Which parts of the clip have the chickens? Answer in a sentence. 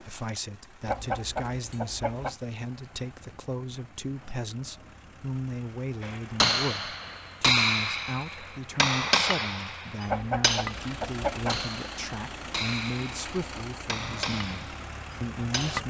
The chickens can be heard from 0.8 to 2.4 s and from 10.1 to 11.7 s.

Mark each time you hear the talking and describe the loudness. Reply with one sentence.
You can hear the talking from 0.0 to 15.8 s, at a steady volume.